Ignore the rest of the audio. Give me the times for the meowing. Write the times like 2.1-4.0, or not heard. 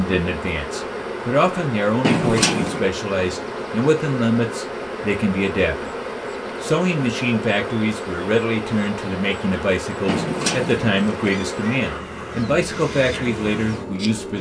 2.0-2.9, 10.1-11.8.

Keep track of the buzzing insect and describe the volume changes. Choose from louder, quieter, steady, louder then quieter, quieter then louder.
steady.